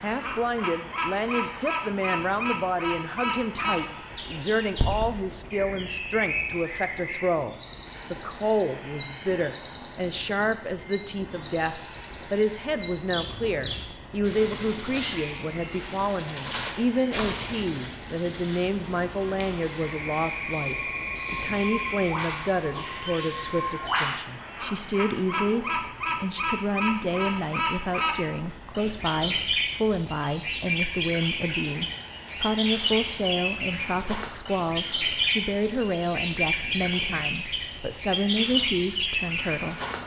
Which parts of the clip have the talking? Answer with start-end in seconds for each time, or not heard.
0.0-39.8.